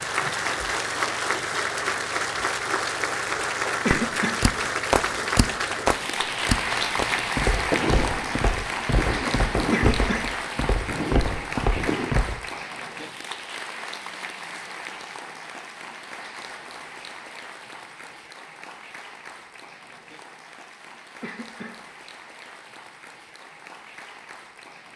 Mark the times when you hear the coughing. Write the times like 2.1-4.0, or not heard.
3.9-4.4, 9.7-10.2, 21.2-21.8.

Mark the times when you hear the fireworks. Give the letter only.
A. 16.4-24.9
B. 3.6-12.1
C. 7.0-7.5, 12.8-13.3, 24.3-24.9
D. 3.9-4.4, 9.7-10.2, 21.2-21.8
B.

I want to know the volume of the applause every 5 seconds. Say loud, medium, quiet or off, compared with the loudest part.
loud, loud, medium, quiet, quiet.